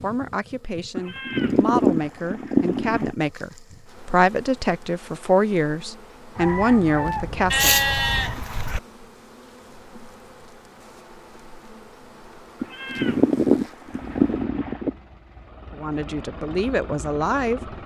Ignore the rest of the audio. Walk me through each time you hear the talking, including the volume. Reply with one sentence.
The talking can be heard from 0.0 to 7.8 s, getting louder; and briefly from 15.8 to 17.7 s.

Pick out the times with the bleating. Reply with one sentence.
The bleating can be heard from 0.9 to 3.1 s, from 7.5 to 8.8 s and from 12.6 to 14.9 s.